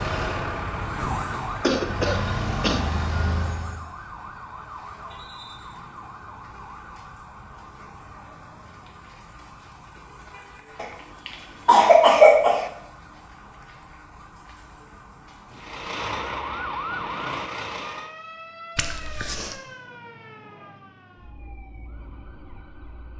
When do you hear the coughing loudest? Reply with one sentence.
The volume of the coughing peaks at 12 seconds.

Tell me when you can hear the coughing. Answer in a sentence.
The coughing can be heard from 1.6 to 2.8 s, from 10.8 to 12.7 s and from 18.8 to 19.6 s.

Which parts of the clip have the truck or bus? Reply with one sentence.
The truck or bus can be heard from 0.0 to 3.9 s and from 15.5 to 18.1 s.